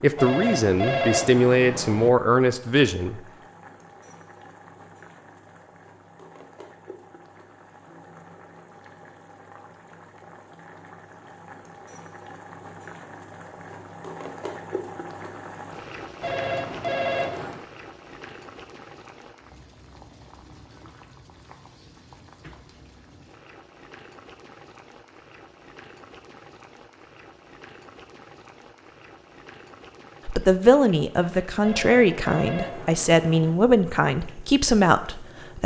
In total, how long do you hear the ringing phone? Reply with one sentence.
The ringing phone can be heard for 5 seconds in total.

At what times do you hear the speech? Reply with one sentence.
You can hear the speech from 0.0 to 3.2 s and from 30.2 to 35.6 s.